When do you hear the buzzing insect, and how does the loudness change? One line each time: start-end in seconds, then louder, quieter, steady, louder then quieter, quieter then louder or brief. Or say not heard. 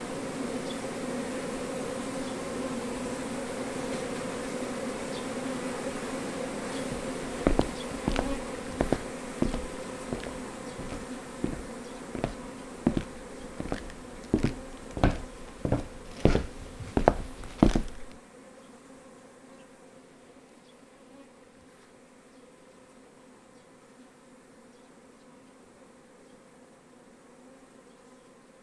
0.0-28.5 quieter.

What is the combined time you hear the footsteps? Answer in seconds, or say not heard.
11 s.